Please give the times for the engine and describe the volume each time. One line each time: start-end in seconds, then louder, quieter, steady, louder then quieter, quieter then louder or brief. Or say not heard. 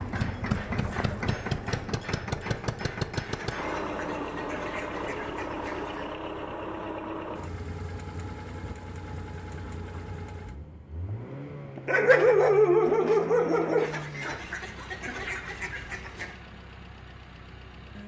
0.0-18.0 quieter.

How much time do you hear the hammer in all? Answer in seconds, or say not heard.
4 s.